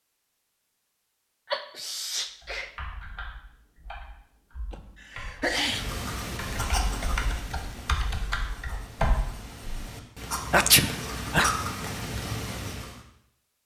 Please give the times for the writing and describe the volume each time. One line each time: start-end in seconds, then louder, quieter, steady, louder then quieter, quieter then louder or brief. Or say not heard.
5.5-13.1 quieter then louder.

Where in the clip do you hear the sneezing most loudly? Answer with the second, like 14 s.
11 s.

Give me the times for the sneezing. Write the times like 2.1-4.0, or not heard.
1.5-2.7, 4.7-5.9, 10.5-11.5.